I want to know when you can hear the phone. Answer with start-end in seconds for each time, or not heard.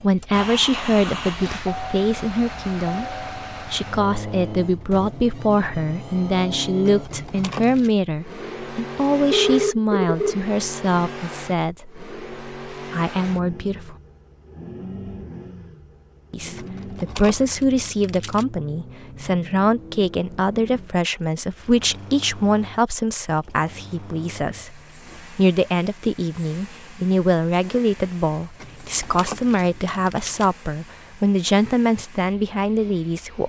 9.3-10.4.